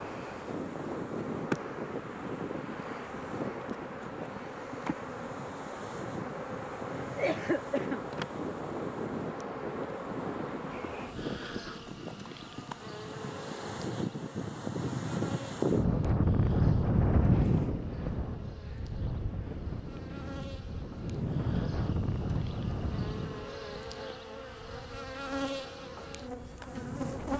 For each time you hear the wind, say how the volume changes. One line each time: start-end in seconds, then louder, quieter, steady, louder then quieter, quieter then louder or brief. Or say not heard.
0.0-27.3 louder then quieter.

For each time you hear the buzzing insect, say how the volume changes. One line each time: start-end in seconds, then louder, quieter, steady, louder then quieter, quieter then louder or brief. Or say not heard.
0.0-27.3 quieter then louder.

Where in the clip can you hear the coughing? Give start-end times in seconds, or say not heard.
7.0-8.1.